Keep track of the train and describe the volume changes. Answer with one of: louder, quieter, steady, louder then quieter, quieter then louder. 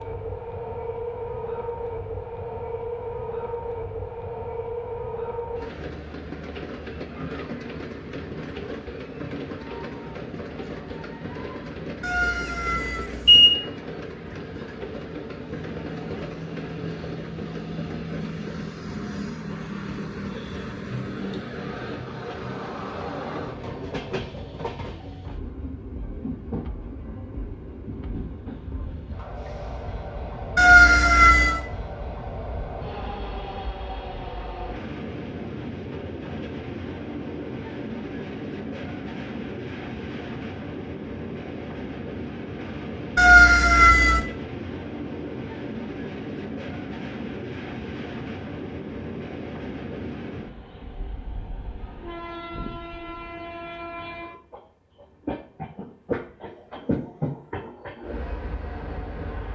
steady.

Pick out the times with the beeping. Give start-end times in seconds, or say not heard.
12.0-13.6, 30.6-31.6, 43.1-44.2.